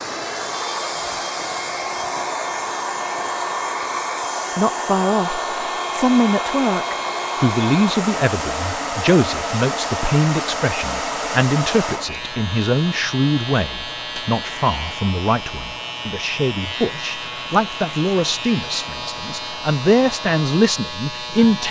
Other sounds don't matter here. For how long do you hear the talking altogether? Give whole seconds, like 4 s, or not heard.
17 s.